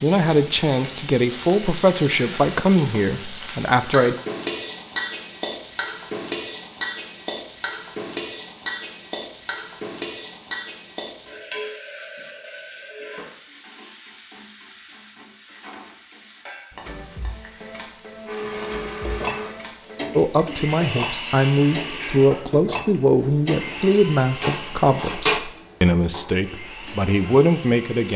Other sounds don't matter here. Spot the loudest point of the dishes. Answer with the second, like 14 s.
25 s.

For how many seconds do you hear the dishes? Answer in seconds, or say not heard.
7 s.